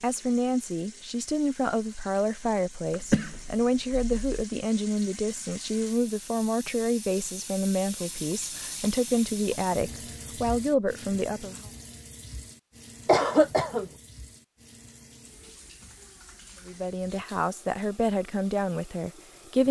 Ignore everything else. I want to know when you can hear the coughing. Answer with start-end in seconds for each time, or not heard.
2.9-4.2, 13.1-13.9.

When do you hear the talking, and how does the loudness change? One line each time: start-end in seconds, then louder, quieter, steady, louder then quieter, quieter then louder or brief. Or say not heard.
0.0-11.6 steady
16.6-19.6 brief.